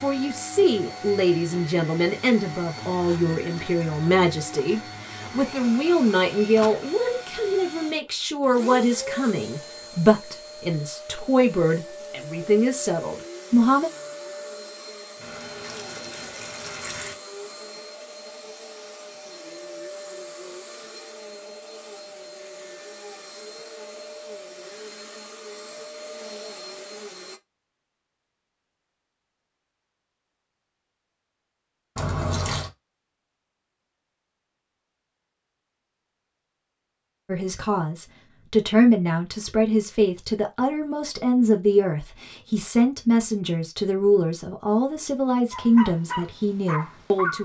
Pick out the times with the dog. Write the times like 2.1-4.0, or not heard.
45.5-47.4.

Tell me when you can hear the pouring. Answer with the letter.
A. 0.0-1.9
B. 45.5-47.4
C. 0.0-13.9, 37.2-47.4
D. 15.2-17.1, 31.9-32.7
D.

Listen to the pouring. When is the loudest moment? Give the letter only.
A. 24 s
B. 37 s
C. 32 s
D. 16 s
C.